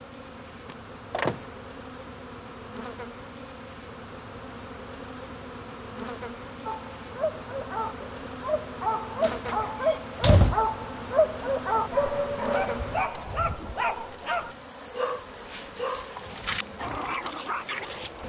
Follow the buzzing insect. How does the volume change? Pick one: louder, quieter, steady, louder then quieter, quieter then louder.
louder.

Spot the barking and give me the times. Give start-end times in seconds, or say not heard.
6.7-18.1.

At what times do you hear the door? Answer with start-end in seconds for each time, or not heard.
0.7-1.4, 9.2-10.7.